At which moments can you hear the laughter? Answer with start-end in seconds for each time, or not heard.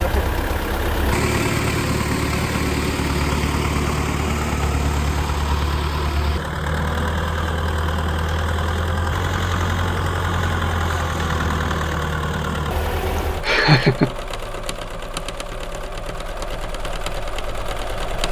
13.2-14.1.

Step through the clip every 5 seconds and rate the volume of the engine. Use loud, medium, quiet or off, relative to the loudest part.
loud, loud, loud, medium.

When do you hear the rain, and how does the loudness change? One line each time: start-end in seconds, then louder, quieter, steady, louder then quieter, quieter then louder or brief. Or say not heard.
not heard.